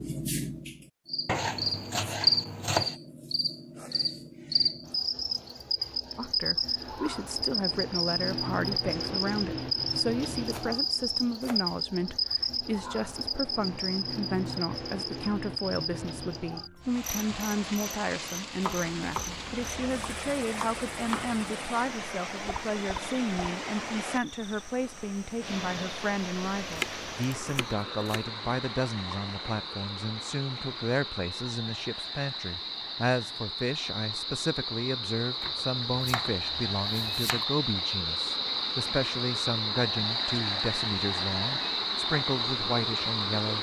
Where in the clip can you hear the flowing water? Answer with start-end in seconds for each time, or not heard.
16.8-43.5.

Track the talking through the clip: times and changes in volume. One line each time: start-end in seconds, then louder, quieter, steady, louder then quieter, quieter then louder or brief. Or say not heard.
6.2-43.5 steady.